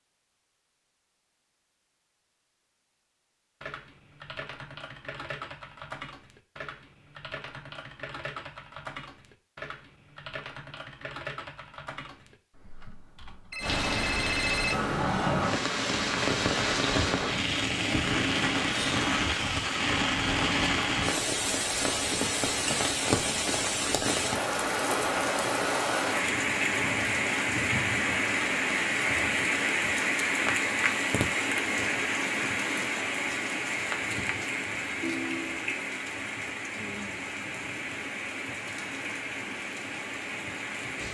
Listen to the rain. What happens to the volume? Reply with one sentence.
The loudness of the rain goes down.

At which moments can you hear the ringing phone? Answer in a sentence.
You can hear the ringing phone from 13.5 to 14.8 s and from 35.0 to 35.7 s.